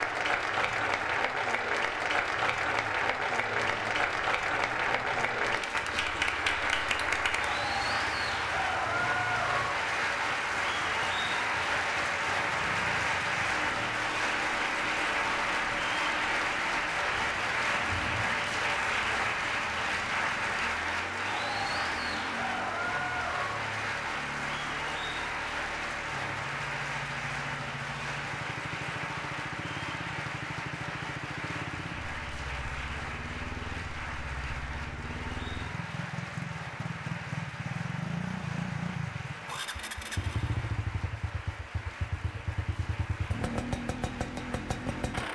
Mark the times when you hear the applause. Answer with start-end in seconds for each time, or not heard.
0.0-45.2.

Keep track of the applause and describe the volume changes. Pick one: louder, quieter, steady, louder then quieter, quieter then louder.
quieter.